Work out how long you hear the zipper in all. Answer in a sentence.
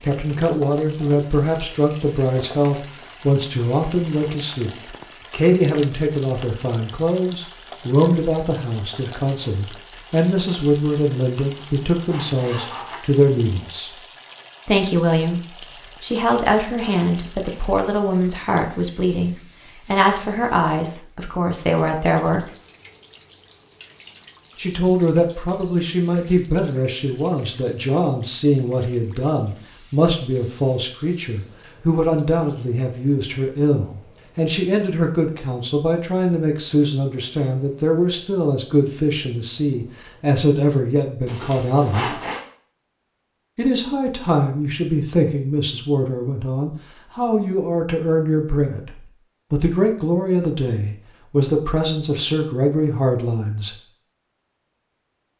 The zipper can be heard for 3 seconds in total.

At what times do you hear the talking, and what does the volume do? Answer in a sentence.
The talking can be heard from 0.0 to 13.9 s, at a steady volume; from 14.7 to 22.4 s, at a steady volume; from 24.6 to 42.2 s, at a steady volume; and from 43.5 to 53.8 s, at a steady volume.